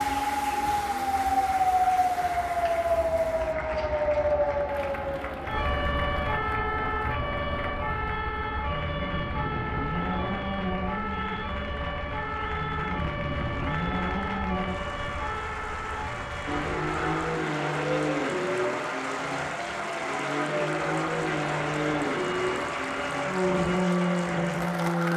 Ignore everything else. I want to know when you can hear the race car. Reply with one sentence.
The race car can be heard from 0.0 to 14.8 s and from 16.4 to 25.1 s.